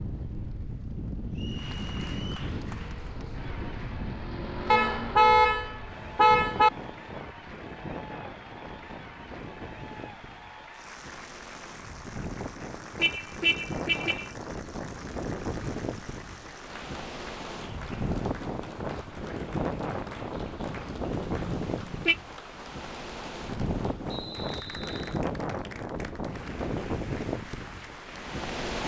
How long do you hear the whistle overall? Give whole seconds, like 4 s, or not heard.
2 s.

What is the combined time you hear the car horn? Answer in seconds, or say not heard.
4 s.